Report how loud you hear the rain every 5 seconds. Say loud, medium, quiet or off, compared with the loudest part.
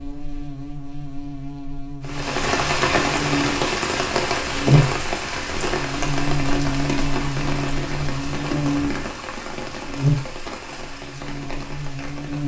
loud, medium, quiet.